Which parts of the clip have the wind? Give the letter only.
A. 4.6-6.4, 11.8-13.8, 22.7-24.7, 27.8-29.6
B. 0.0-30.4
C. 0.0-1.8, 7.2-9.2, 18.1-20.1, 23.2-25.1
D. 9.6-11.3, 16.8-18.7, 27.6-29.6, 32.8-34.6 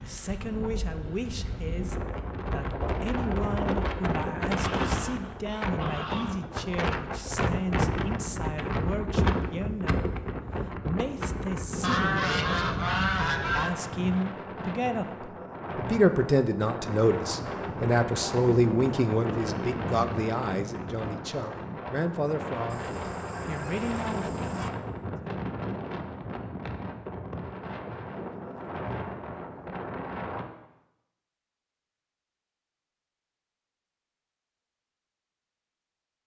B.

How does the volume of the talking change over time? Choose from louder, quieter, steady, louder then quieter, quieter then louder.
louder then quieter.